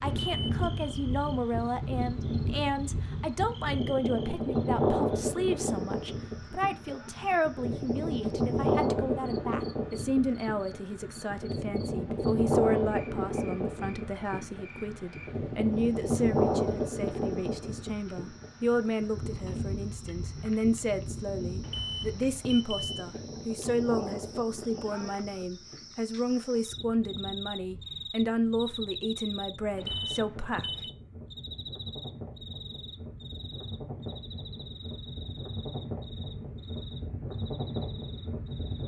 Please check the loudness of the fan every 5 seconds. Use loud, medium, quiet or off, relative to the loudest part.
loud, loud, loud, loud, medium, quiet, quiet, medium.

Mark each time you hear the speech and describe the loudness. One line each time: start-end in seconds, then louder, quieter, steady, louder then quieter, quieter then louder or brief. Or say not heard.
0.0-30.7 steady.